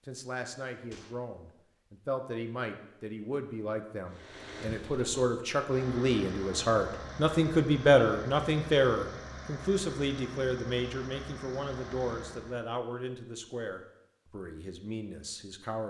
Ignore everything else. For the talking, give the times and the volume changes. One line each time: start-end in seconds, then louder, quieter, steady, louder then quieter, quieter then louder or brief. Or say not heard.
0.1-15.8 louder then quieter.